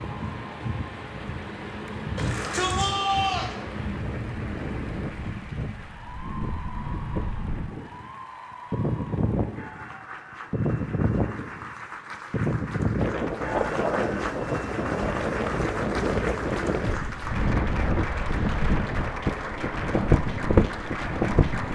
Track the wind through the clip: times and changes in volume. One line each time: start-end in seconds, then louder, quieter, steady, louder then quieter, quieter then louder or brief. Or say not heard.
0.0-21.6 louder.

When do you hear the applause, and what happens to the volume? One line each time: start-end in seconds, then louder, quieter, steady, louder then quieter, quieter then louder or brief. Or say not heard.
0.0-21.6 louder.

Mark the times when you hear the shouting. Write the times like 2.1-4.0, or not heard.
2.1-3.5.